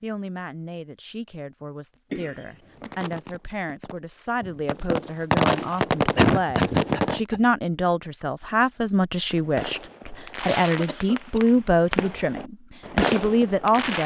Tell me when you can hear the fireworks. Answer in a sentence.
The fireworks can be heard from 2.8 to 7.2 s and from 9.3 to 14.0 s.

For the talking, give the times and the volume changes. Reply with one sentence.
You can hear the talking from 0.0 to 14.0 s, getting louder.